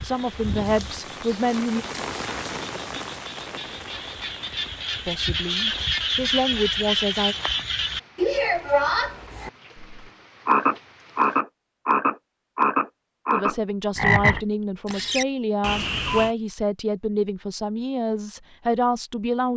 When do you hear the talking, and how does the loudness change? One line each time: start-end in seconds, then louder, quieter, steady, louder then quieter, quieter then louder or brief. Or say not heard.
0.0-1.9 brief
5.0-7.3 brief
13.3-19.5 steady.